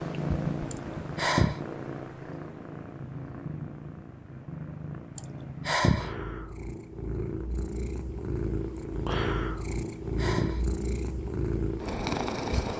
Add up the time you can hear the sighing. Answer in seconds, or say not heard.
3 s.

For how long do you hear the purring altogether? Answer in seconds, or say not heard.
13 s.